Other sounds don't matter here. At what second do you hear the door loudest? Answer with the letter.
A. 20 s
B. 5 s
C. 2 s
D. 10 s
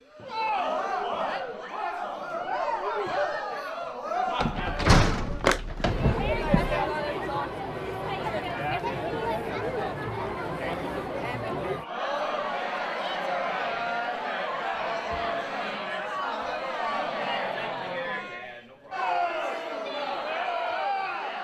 B.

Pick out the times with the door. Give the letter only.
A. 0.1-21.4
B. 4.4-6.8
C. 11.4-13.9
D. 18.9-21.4
B.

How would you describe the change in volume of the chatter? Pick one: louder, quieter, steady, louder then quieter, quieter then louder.
steady.